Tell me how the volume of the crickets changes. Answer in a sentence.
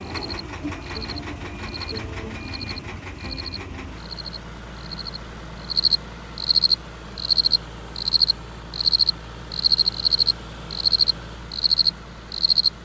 The volume of the crickets goes up.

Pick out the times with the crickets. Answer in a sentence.
The crickets can be heard from 0.0 to 12.7 s.